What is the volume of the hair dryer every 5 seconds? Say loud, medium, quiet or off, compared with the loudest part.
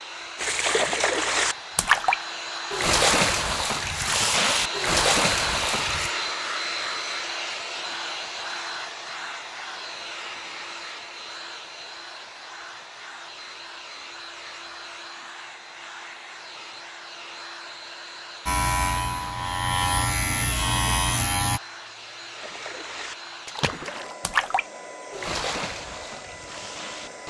loud, loud, medium, medium, medium, medium.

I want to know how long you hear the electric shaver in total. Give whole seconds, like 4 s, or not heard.
3 s.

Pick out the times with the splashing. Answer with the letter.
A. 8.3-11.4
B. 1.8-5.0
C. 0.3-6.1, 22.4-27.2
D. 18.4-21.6
C.